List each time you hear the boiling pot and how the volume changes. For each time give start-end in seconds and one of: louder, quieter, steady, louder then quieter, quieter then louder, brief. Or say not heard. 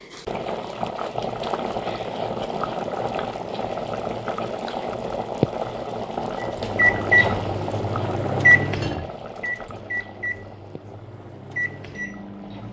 0.0-12.6 quieter.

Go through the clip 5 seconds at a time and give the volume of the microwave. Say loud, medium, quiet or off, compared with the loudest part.
off, loud, quiet.